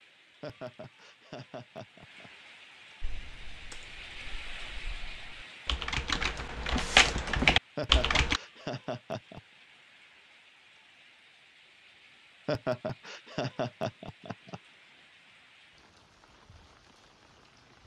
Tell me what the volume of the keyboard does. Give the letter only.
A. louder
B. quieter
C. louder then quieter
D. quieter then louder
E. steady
D.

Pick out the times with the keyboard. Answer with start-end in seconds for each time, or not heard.
3.0-8.4.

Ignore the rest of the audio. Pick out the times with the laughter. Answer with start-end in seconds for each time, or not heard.
0.4-2.3, 7.8-9.4, 12.4-14.6.